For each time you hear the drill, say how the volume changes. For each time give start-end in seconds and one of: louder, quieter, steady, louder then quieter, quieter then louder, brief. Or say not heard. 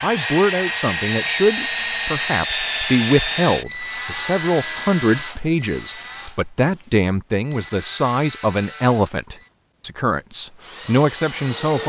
0.0-9.6 quieter
10.4-11.8 brief.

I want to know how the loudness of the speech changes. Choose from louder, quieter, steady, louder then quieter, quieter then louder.
steady.